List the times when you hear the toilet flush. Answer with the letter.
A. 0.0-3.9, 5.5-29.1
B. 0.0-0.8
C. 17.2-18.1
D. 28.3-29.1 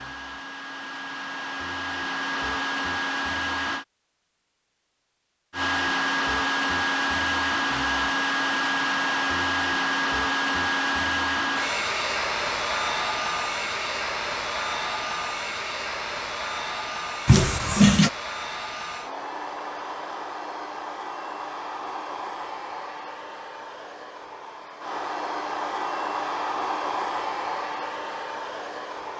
C.